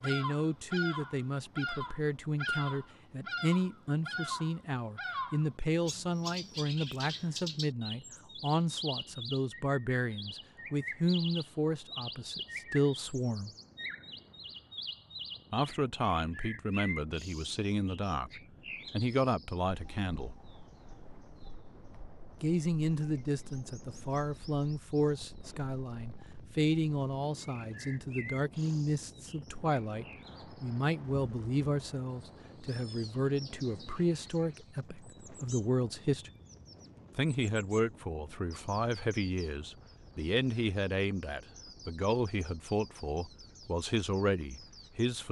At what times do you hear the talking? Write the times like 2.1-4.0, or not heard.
0.0-13.5, 15.5-18.3, 18.9-20.4, 22.4-36.3, 37.1-45.2.